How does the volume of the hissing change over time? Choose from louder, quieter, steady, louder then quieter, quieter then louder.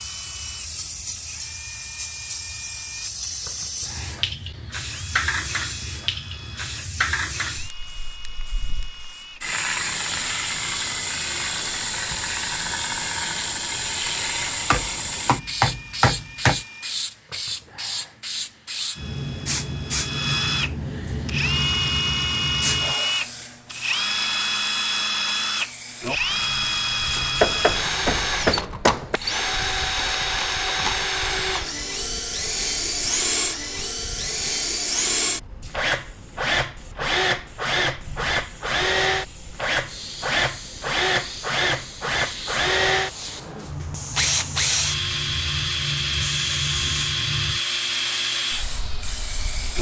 quieter then louder.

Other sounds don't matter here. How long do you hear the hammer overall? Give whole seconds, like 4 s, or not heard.
4 s.